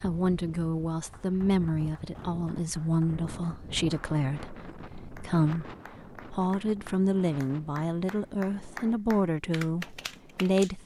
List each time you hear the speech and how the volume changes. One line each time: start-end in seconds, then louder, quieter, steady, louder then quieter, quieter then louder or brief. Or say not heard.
0.0-10.8 steady.